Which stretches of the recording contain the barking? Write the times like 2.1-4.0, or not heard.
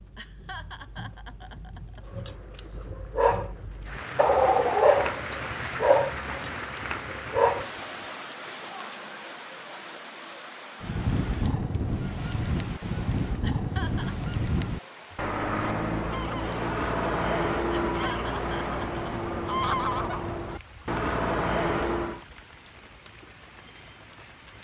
2.1-8.1.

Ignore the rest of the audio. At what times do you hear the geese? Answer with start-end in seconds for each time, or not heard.
10.8-22.2.